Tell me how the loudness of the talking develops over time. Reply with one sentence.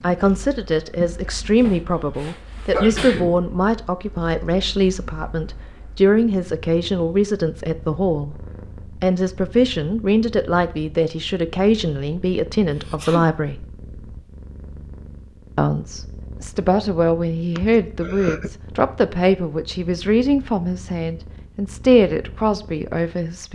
The volume of the talking stays about the same.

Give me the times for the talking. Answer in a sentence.
You can hear the talking from 0.0 to 13.7 s and from 15.6 to 23.5 s.